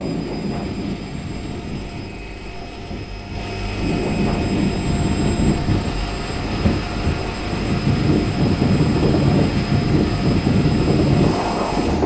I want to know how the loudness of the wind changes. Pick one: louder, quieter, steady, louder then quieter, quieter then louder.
louder.